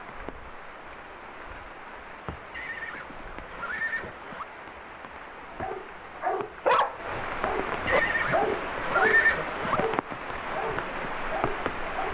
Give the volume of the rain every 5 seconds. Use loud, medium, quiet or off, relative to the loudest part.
medium, loud, loud.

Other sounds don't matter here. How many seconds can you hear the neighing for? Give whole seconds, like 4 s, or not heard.
4 s.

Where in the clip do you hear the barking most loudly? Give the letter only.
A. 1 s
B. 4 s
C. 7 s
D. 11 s
C.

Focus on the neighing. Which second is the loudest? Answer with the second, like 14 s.
9 s.